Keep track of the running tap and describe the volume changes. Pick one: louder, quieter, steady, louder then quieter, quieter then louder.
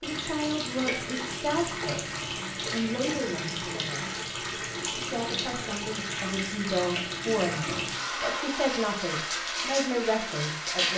steady.